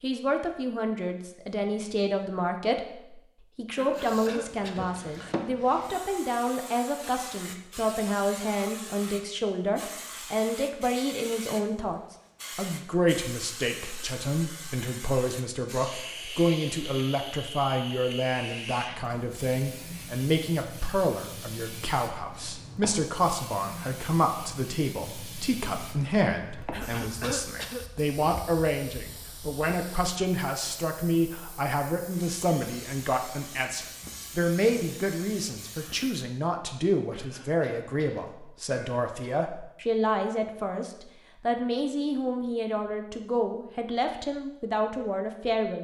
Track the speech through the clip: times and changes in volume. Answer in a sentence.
You can hear the speech from 0.0 to 45.8 s, at a steady volume.